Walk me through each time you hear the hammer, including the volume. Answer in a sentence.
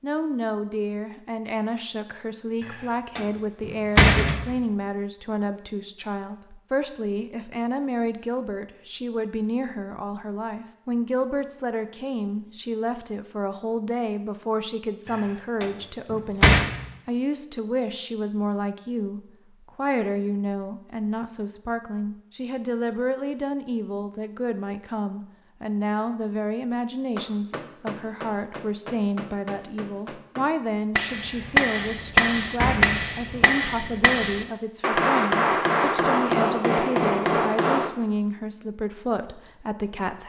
The hammer can be heard from 27.1 to 37.9 s, getting louder.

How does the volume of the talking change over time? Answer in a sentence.
The volume of the talking stays about the same.